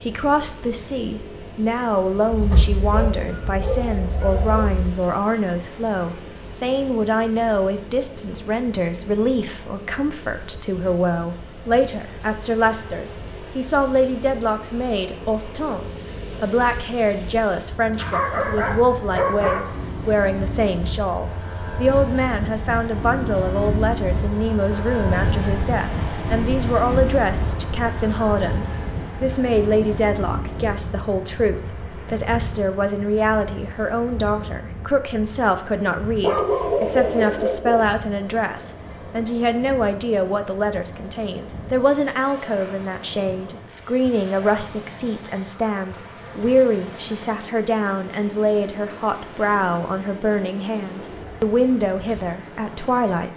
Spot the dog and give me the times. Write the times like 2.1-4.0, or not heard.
2.3-5.0, 17.9-19.8, 36.2-37.9.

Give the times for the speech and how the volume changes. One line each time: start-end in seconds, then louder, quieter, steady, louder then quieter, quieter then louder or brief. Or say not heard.
0.0-53.3 steady.